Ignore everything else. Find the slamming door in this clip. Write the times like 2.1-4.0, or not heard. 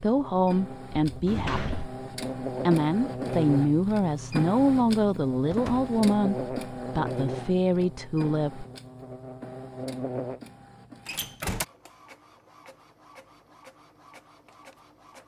1.1-1.9, 5.5-5.9, 11.1-11.7.